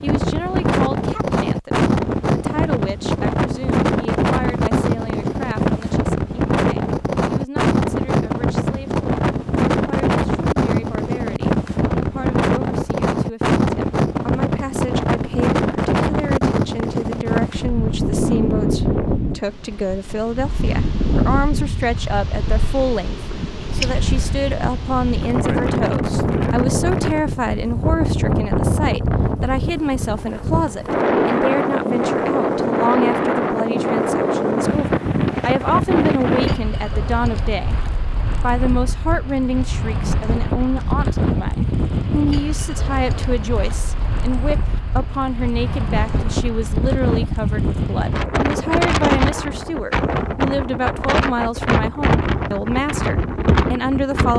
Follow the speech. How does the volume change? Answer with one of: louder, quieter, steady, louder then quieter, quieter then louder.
louder.